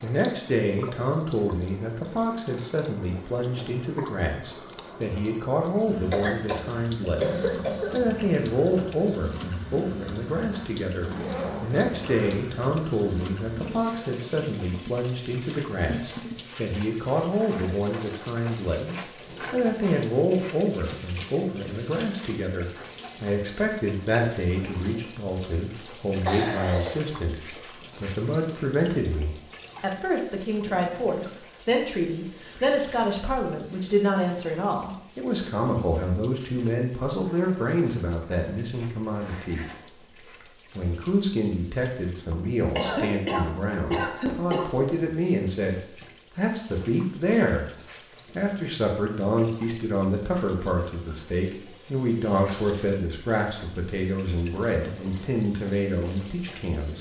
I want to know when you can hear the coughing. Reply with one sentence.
You can hear the coughing from 6.1 to 8.0 s, from 26.2 to 26.9 s and from 42.3 to 44.9 s.